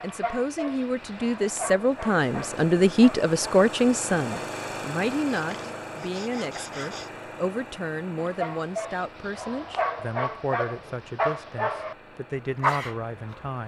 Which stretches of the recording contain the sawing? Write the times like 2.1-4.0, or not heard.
5.3-7.1.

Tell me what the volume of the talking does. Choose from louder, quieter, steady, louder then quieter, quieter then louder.
quieter.